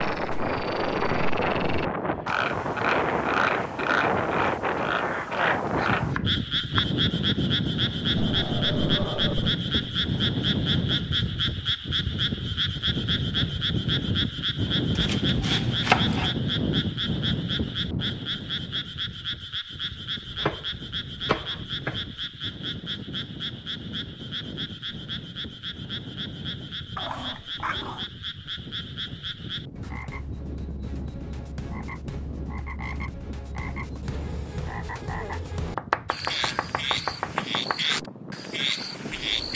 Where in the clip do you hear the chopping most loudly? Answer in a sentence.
The loudest moment of the chopping is at 16 seconds.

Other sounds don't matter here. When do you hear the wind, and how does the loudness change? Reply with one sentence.
You can hear the wind from 0.0 to 39.5 s, getting quieter.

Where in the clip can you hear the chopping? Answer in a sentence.
You can hear the chopping from 6.1 to 6.8 s, from 14.9 to 16.4 s, from 20.2 to 22.2 s and from 35.6 to 37.8 s.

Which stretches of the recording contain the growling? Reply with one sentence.
The growling can be heard from 8.2 to 9.6 s and from 26.9 to 28.1 s.